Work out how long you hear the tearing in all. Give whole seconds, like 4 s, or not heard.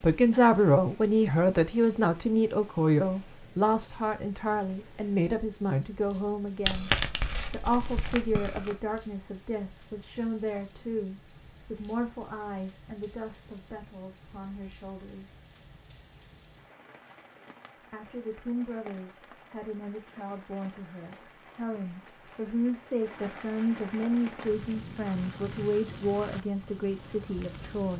2 s.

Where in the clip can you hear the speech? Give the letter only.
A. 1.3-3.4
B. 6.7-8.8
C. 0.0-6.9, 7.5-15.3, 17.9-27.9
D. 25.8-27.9
C.